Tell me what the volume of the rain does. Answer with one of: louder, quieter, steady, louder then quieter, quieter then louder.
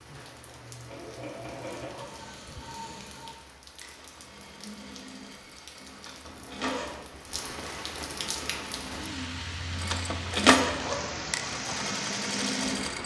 louder.